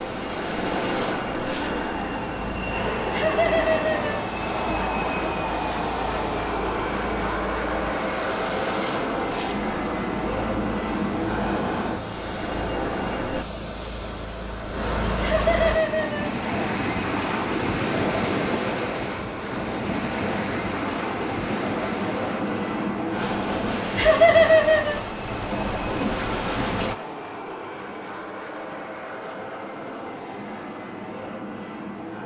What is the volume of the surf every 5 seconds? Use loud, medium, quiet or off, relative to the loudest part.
medium, medium, medium, loud, loud, loud, off.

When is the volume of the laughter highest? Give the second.
24 s.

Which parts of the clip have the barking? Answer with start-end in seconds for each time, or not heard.
not heard.